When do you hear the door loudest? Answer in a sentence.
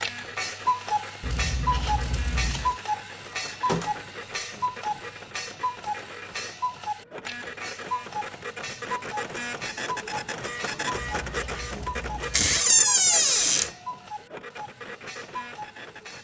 The loudest moment of the door is at 13 seconds.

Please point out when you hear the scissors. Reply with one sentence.
The scissors can be heard from 1.2 to 2.8 s and from 11.1 to 12.6 s.